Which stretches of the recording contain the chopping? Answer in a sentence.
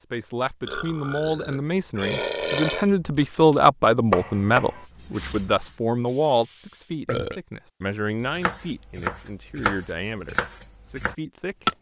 You can hear the chopping from 3.1 to 4.8 s and from 8.2 to 11.7 s.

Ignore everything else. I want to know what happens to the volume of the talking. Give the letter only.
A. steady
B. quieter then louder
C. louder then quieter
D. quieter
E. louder
C.